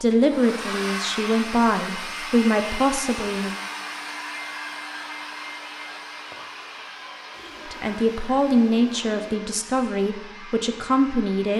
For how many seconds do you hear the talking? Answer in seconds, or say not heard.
7 s.